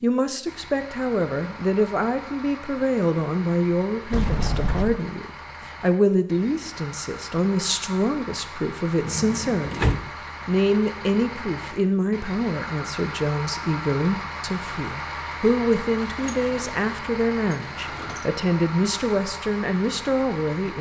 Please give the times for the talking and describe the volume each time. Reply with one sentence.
The talking can be heard from 0.0 to 20.7 s, at a steady volume.